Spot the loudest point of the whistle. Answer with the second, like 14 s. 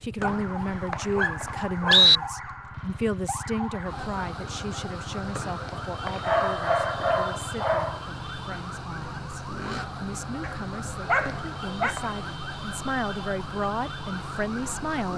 2 s.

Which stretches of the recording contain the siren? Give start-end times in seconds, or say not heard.
0.2-15.1.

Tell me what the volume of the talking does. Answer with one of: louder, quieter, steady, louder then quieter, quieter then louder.
quieter then louder.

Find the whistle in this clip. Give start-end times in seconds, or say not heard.
0.2-2.2, 5.3-6.2, 11.2-12.2.